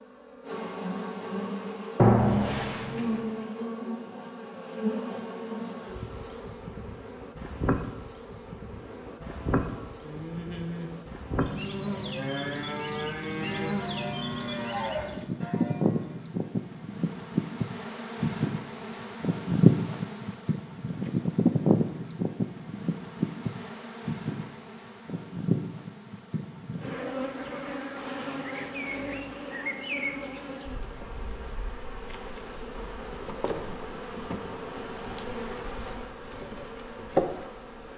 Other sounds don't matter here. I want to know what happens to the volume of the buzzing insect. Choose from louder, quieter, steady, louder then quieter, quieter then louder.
louder then quieter.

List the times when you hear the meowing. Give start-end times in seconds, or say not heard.
1.9-3.2.